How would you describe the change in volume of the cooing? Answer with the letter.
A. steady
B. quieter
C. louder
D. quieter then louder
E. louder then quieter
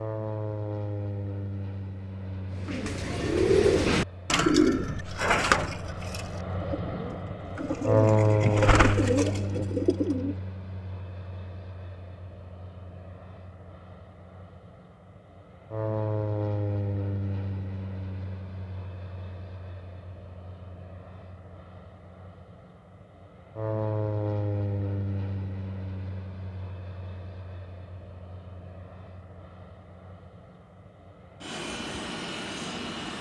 D.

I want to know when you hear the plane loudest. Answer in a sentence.
The loudest moment of the plane is at 8 seconds.